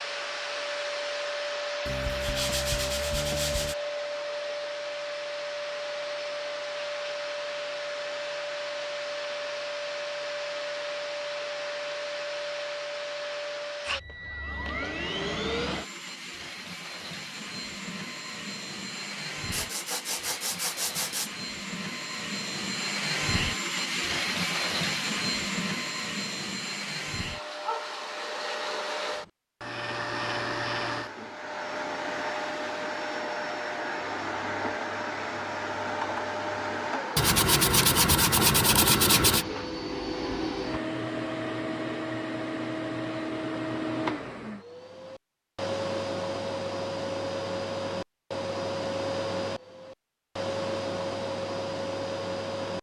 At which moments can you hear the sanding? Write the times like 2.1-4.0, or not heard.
1.9-3.8, 19.5-21.3, 37.1-39.5.